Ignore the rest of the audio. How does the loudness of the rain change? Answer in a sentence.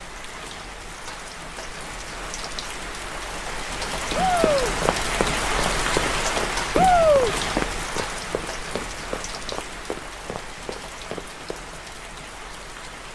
The volume of the rain goes up, then down.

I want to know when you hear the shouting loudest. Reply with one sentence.
The loudest moment of the shouting is at 7 seconds.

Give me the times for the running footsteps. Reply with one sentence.
The running footsteps can be heard from 4.1 to 11.6 s.